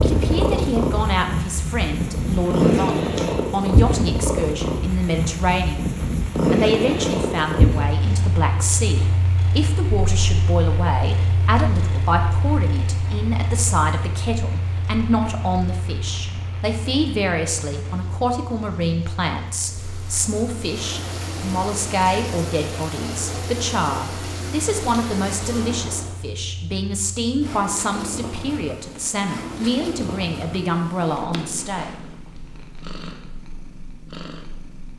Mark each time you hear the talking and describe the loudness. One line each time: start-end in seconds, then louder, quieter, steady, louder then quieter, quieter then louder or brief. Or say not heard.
0.0-31.9 steady.